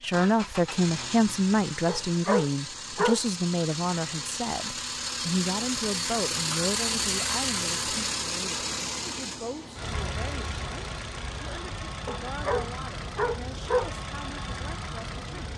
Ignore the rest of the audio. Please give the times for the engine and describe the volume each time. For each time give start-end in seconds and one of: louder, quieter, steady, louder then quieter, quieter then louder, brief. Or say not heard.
0.0-15.5 louder then quieter.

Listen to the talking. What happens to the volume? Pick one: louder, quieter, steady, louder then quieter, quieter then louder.
quieter.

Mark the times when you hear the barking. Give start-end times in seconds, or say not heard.
1.9-3.2, 12.1-13.9.